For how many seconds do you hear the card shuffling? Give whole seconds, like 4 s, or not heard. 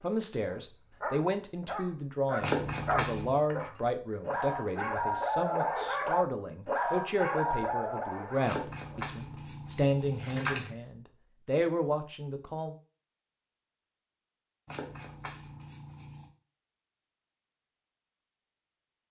5 s.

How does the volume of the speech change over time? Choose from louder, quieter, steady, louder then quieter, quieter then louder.
steady.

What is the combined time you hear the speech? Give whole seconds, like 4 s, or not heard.
13 s.